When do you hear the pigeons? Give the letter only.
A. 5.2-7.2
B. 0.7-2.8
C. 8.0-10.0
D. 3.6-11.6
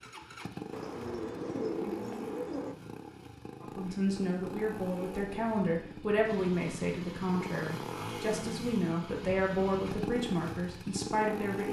B.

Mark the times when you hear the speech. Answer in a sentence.
The speech can be heard from 3.6 to 11.6 s.